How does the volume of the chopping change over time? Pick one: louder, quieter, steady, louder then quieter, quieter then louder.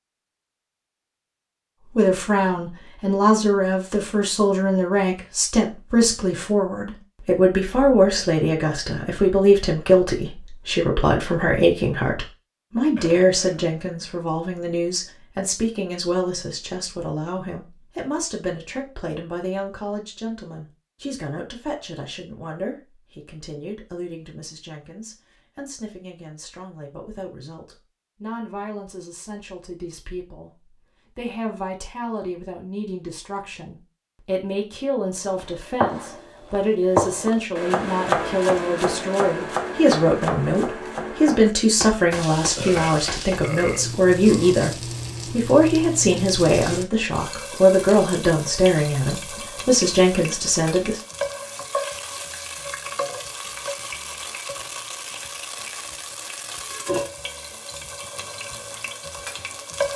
quieter.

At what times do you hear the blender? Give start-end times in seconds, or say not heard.
not heard.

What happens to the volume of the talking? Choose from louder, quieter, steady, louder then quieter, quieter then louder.
quieter then louder.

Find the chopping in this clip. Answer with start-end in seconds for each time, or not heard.
35.2-43.5.